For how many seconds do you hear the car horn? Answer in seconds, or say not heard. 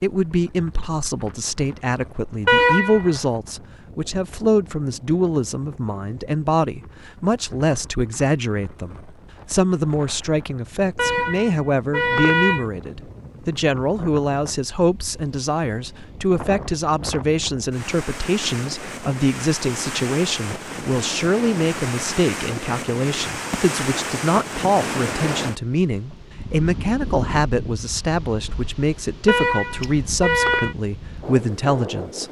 4 s.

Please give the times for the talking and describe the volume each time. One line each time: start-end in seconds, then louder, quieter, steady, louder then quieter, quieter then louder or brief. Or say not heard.
0.0-32.2 steady.